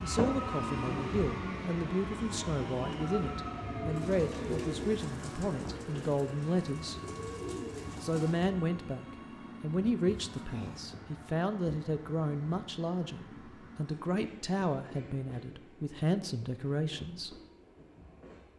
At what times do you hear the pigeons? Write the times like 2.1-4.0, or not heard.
3.9-8.4.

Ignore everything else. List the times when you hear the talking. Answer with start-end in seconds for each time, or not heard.
0.0-7.0, 8.0-17.4.